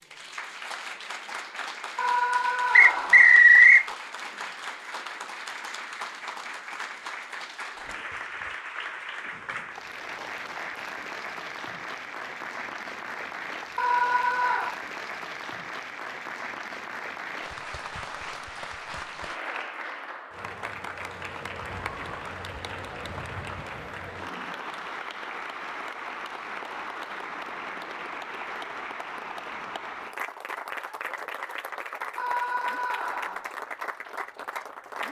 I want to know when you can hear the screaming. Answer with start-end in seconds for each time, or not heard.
1.9-3.4, 13.8-14.8, 32.1-33.5.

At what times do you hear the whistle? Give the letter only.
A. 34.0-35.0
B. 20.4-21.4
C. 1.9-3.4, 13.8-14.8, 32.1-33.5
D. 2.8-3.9
D.